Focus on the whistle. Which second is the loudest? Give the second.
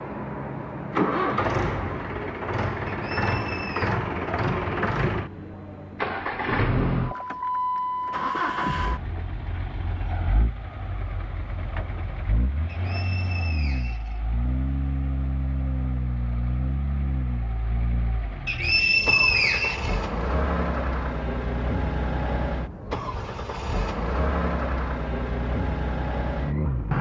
19 s.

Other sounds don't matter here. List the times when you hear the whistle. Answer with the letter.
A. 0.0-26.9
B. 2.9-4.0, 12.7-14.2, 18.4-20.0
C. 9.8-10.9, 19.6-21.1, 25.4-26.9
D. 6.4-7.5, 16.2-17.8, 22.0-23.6
B.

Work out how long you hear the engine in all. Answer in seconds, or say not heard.
27 s.